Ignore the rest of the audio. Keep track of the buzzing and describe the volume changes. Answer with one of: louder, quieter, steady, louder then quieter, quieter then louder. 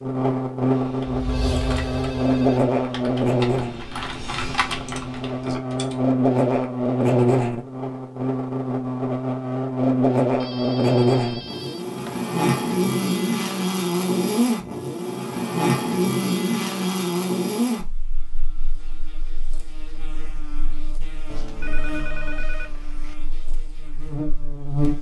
quieter.